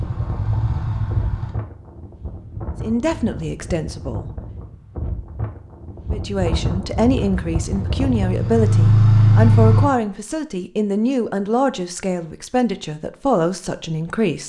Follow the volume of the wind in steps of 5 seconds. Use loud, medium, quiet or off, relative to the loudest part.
medium, loud, off.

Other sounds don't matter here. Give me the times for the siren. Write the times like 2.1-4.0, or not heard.
not heard.